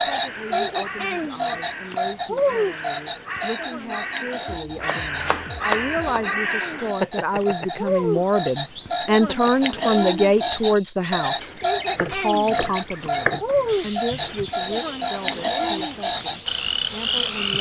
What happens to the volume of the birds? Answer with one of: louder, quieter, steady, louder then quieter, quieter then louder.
louder then quieter.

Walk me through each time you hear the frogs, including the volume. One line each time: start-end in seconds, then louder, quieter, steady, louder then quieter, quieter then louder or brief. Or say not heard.
0.0-17.5 quieter then louder.